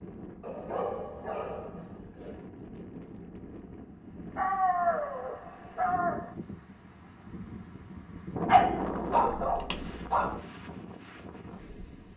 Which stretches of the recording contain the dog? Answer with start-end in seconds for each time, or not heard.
0.4-2.4, 4.3-6.3, 8.4-10.4.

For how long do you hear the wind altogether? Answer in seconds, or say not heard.
12 s.